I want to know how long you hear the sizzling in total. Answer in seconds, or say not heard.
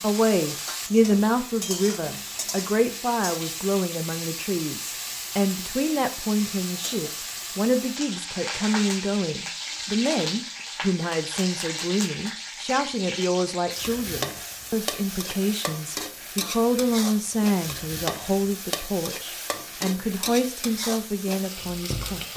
22 s.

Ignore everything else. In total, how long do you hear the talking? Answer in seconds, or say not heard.
22 s.